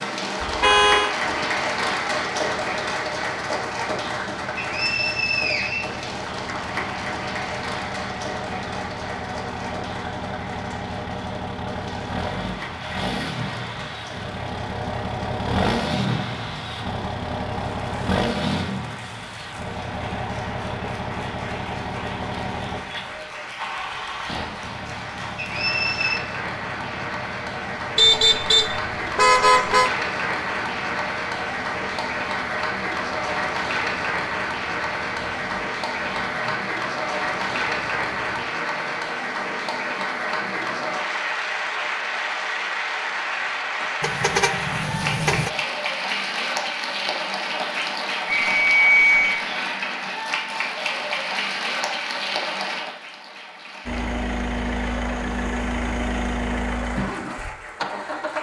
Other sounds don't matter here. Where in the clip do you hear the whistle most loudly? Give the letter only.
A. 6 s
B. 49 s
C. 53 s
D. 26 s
B.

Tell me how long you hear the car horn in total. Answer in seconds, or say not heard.
4 s.